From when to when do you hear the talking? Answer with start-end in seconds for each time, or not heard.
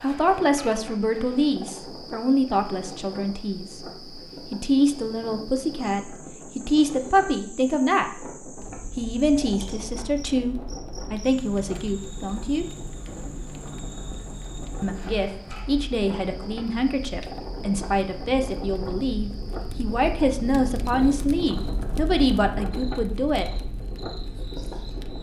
0.0-3.9, 4.5-8.2, 8.9-12.7, 14.8-23.4.